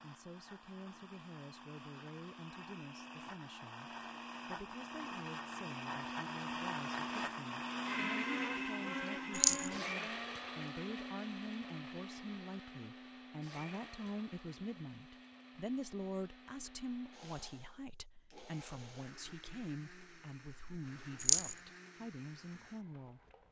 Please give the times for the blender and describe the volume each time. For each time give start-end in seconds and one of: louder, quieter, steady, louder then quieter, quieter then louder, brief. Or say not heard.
0.0-23.4 louder then quieter.